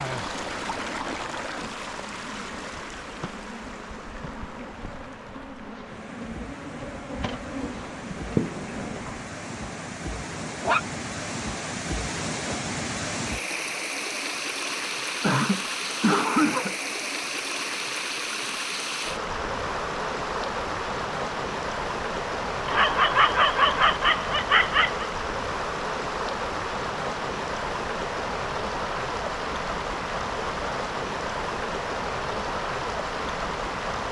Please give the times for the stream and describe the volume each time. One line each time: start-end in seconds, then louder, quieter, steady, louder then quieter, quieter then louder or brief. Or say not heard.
0.0-34.0 louder.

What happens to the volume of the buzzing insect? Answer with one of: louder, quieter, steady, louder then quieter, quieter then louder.
louder.